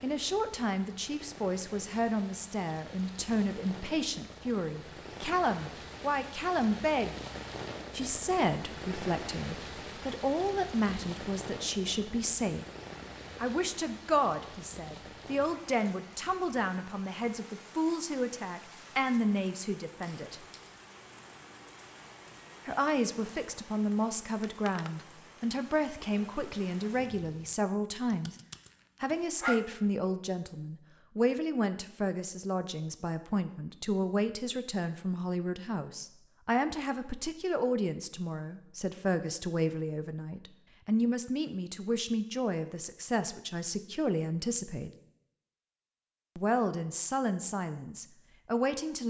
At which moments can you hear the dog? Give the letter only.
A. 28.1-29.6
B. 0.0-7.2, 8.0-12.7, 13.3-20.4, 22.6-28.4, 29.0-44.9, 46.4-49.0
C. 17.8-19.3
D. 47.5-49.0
A.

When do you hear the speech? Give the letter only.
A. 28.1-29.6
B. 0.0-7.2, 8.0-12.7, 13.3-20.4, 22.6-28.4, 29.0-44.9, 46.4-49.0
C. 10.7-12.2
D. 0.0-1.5
B.